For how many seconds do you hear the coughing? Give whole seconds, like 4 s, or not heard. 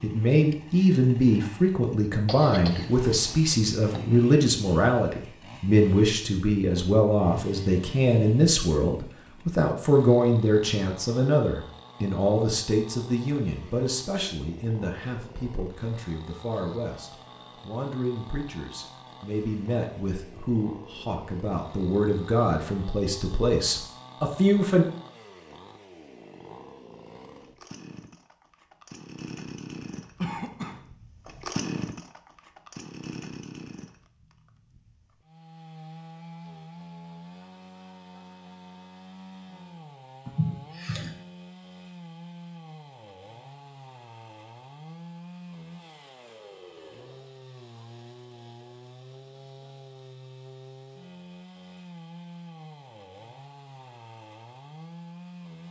3 s.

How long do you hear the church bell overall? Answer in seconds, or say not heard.
not heard.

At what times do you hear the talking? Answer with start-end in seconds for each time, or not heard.
0.0-24.9.